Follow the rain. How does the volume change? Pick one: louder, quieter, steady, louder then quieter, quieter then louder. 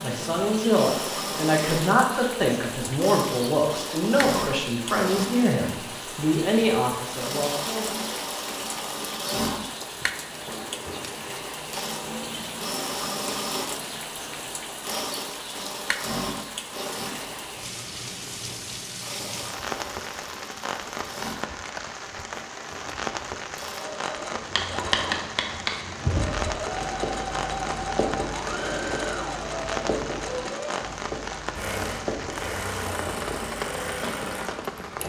steady.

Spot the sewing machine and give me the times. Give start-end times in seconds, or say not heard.
0.0-35.0.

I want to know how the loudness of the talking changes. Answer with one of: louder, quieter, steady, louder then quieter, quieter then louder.
steady.